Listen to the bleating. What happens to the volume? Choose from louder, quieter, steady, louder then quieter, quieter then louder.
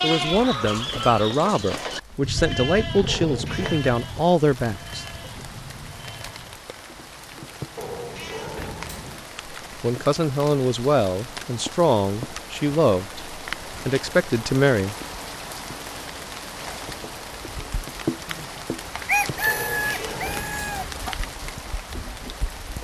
quieter.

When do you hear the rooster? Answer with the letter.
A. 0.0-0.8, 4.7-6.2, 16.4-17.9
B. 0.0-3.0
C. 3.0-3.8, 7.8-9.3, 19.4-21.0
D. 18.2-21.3
D.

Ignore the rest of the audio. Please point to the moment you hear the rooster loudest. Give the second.
19 s.